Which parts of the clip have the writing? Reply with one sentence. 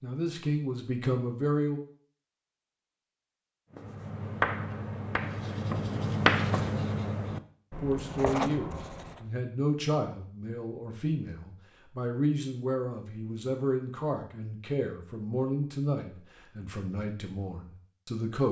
You can hear the writing from 3.7 to 9.2 s.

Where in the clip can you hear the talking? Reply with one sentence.
The talking can be heard from 0.0 to 1.8 s and from 7.8 to 18.4 s.